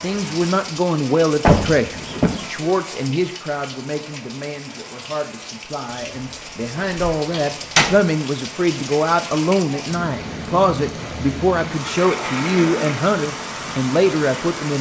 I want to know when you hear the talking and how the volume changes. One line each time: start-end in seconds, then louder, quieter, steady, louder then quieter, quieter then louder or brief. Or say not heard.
0.0-14.7 quieter then louder.